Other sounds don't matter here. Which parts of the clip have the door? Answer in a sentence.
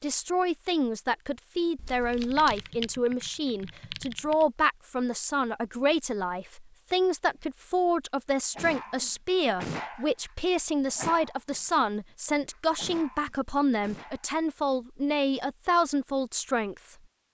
You can't hear the door here.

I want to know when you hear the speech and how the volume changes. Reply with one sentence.
The speech can be heard from 0.0 to 16.9 s, at a steady volume.